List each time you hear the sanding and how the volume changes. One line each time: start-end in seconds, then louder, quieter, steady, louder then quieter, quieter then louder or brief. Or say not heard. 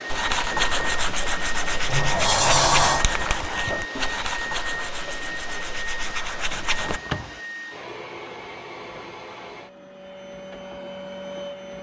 0.1-7.0 quieter.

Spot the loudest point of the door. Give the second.
3 s.